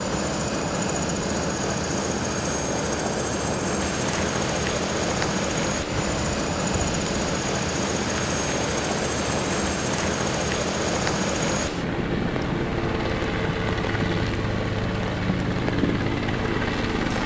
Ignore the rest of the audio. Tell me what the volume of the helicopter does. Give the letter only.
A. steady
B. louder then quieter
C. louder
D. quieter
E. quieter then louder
A.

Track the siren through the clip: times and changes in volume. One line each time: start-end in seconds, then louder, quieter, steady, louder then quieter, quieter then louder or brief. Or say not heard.
not heard.